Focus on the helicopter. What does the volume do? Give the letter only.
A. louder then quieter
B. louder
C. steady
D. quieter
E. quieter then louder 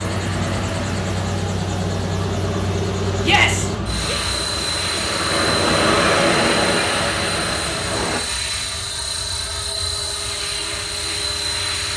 C.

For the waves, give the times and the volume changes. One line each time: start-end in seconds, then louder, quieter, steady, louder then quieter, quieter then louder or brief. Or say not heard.
0.0-8.2 louder.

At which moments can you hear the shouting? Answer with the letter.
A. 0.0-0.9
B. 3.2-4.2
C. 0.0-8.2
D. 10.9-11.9
B.